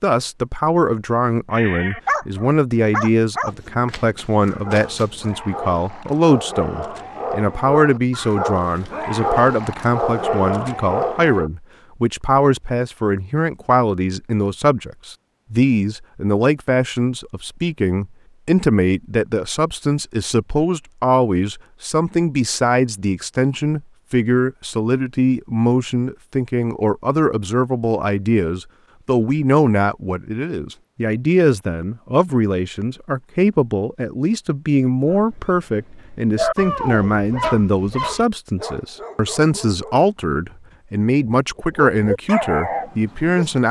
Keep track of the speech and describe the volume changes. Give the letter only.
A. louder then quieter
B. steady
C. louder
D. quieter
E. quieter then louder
B.